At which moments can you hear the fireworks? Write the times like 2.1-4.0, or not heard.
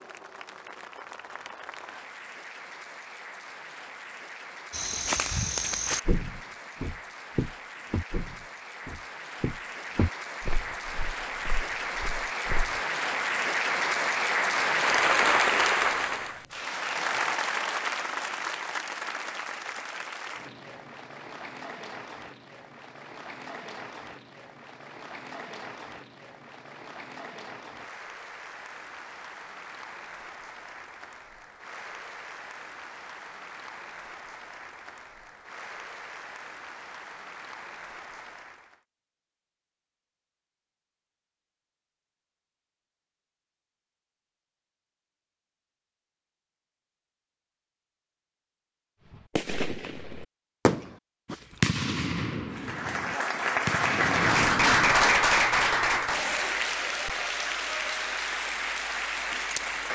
49.0-55.0.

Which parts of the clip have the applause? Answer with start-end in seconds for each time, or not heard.
0.0-38.8, 52.5-59.8.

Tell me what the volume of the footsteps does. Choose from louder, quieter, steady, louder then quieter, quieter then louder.
quieter.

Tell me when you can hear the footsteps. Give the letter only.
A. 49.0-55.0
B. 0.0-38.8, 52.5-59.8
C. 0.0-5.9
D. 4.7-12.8
D.